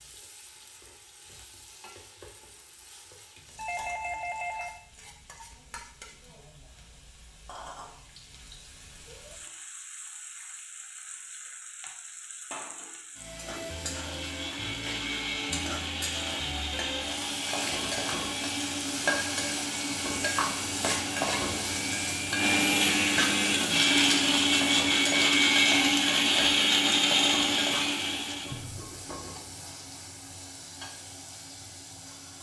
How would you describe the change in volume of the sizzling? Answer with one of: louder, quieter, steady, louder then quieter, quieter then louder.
louder then quieter.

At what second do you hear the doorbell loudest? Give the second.
4 s.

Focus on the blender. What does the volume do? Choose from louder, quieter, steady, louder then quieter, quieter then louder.
louder.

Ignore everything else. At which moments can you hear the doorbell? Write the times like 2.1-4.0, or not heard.
3.5-4.8, 28.5-29.4.